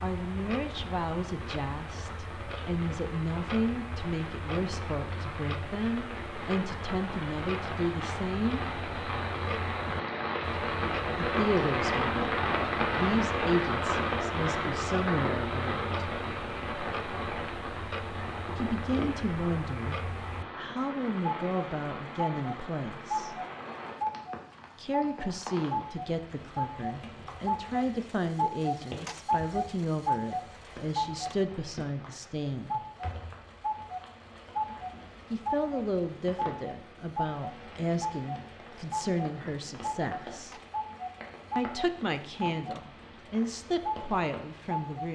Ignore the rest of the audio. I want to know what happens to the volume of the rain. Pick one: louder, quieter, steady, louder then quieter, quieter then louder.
louder then quieter.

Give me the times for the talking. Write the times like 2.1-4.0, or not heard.
0.0-8.6, 11.2-15.8, 18.6-23.4, 24.8-32.8, 35.3-40.5, 41.5-45.1.